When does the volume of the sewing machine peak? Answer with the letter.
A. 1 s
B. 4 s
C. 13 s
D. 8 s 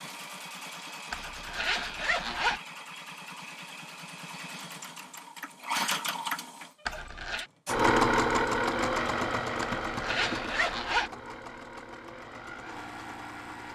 D.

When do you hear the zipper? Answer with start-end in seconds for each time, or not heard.
1.1-2.6, 6.8-7.5, 9.6-11.1.